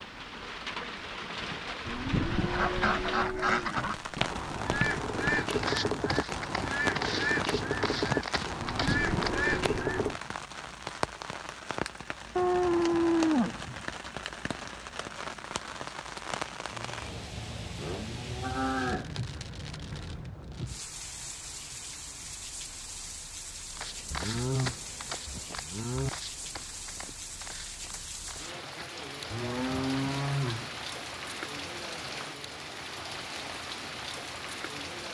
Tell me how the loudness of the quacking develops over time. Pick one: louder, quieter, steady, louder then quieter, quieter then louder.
steady.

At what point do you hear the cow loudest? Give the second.
13 s.